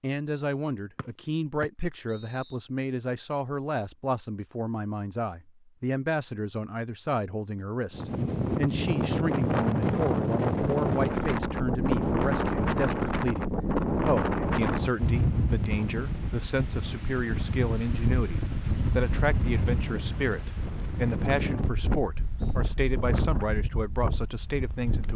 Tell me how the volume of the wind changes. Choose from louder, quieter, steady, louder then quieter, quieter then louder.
quieter.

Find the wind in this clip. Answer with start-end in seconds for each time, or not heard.
7.9-25.1.